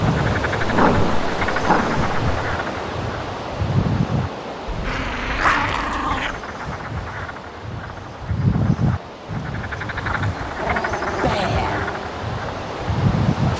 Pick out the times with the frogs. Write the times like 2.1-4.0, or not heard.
0.0-13.5.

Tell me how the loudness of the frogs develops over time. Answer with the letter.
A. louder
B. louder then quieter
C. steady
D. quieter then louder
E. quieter
D.